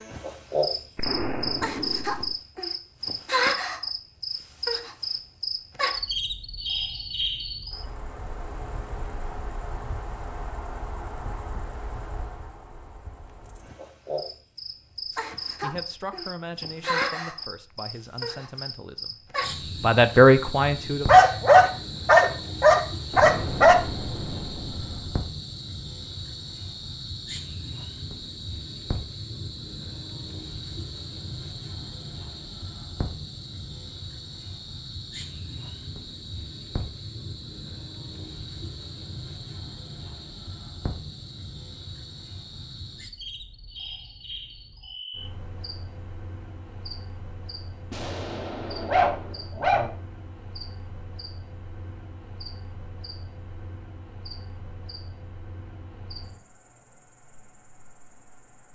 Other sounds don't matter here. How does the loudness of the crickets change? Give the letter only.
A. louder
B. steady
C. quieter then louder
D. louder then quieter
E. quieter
E.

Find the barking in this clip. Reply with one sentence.
The barking can be heard from 21.1 to 23.8 s and from 48.0 to 49.9 s.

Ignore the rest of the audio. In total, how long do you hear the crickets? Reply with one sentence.
You can hear the crickets for 59 seconds altogether.